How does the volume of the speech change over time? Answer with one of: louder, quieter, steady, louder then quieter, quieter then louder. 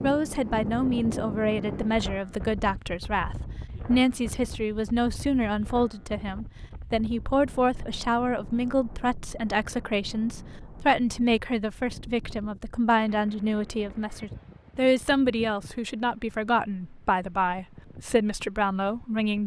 steady.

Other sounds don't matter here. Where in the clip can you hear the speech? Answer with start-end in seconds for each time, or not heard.
0.0-19.4.